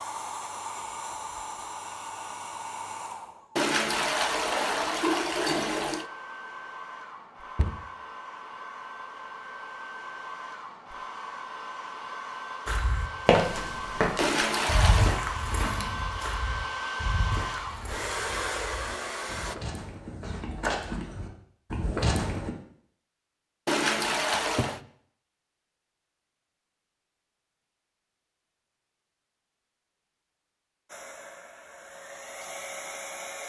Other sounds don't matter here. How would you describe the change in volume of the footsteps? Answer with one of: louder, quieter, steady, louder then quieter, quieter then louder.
quieter then louder.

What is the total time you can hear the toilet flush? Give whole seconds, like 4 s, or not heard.
5 s.